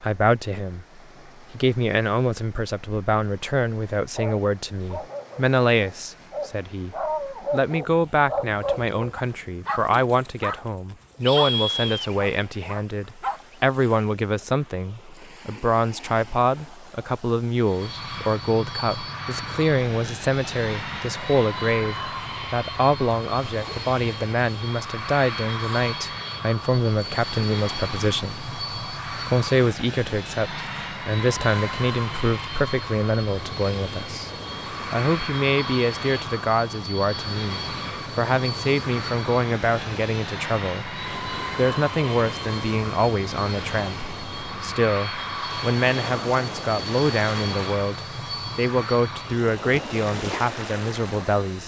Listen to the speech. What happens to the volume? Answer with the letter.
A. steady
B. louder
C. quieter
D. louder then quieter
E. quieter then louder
A.